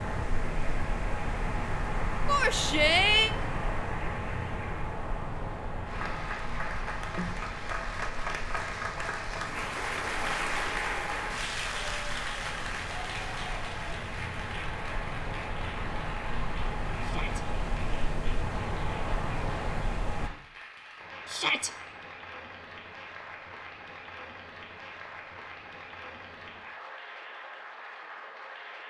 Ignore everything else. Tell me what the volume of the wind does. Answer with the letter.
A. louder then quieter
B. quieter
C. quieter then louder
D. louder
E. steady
C.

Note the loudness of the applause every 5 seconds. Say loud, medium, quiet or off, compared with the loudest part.
medium, loud, loud, medium, medium, medium.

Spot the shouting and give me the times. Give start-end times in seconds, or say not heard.
2.2-3.4, 17.0-17.4, 21.2-21.7.